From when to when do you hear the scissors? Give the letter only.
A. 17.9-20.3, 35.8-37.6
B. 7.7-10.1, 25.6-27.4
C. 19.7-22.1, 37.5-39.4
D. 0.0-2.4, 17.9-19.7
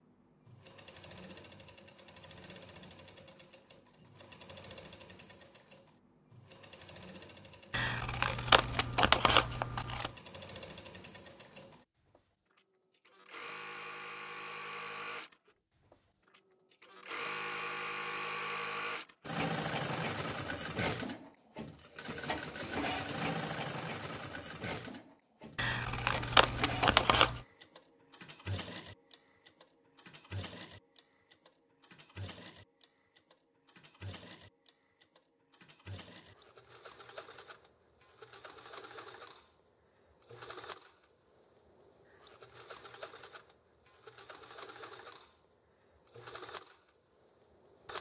B.